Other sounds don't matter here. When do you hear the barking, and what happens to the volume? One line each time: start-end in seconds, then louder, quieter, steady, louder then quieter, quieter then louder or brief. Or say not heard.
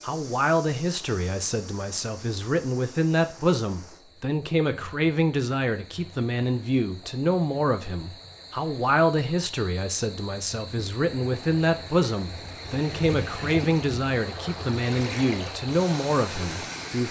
not heard.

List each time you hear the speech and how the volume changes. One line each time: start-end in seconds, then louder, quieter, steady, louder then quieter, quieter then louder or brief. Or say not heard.
0.0-17.0 steady.